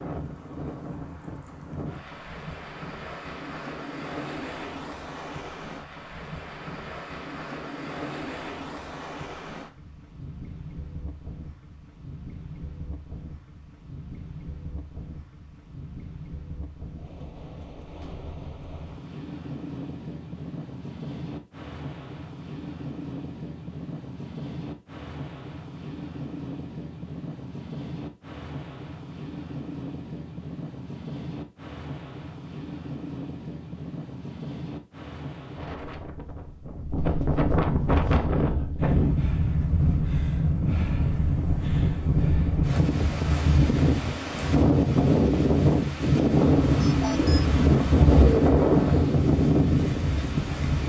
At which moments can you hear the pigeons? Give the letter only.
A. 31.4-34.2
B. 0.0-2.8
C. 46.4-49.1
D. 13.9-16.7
C.